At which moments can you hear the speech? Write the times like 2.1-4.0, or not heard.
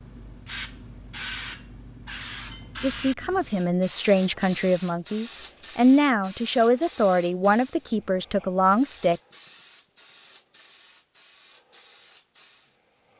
2.8-9.2.